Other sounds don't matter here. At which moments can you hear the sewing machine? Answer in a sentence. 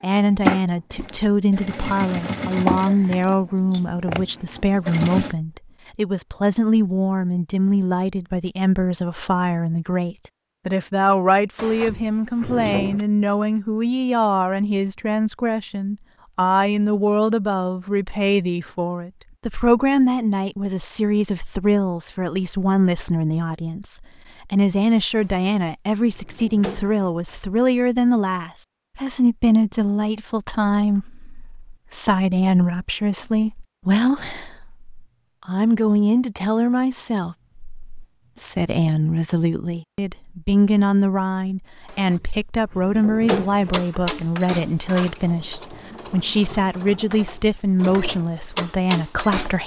The sewing machine can be heard from 0.1 to 5.3 s and from 43.5 to 49.6 s.